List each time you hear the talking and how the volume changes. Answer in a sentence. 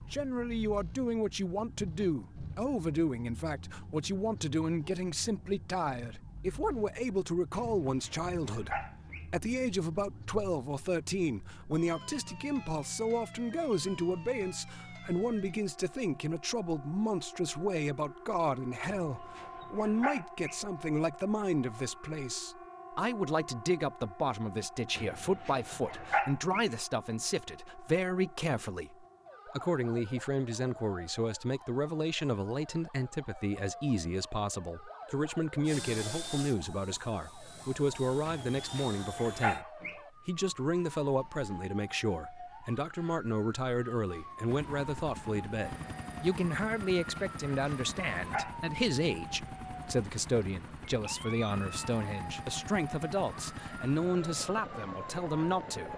The talking can be heard from 0.1 to 39.6 s, at a steady volume; and from 40.2 to 55.9 s, at a steady volume.